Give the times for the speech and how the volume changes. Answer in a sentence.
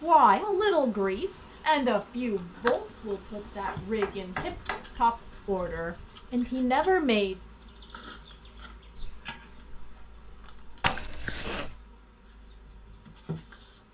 The speech can be heard from 0.0 to 7.3 s, getting quieter then louder.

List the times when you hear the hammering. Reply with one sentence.
The hammering can be heard from 3.4 to 4.8 s and from 8.9 to 11.0 s.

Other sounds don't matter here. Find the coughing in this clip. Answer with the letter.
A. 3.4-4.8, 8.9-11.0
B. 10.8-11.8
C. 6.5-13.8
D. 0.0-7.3
B.